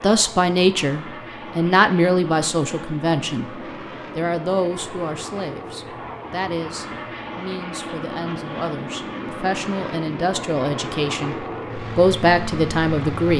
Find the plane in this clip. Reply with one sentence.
You can hear the plane from 0.0 to 13.3 s.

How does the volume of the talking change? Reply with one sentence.
The loudness of the talking goes down, then up.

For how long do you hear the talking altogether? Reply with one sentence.
You can hear the talking for 13 seconds altogether.